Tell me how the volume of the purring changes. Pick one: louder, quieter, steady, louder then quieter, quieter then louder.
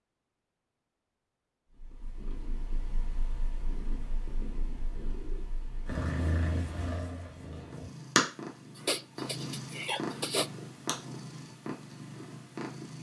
louder then quieter.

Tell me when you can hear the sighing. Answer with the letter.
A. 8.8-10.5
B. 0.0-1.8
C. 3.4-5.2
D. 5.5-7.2
A.